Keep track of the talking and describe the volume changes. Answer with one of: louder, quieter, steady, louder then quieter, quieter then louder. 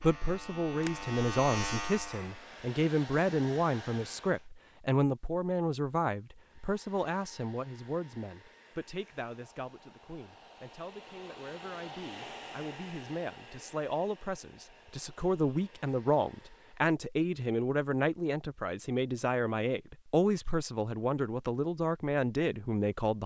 quieter then louder.